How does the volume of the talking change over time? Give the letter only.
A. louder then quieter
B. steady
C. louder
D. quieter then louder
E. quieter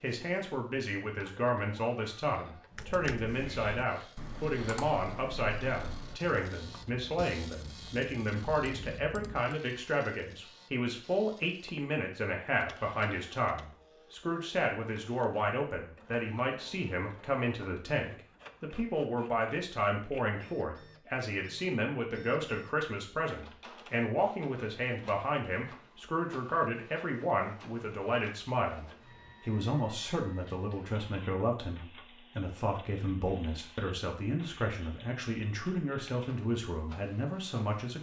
B.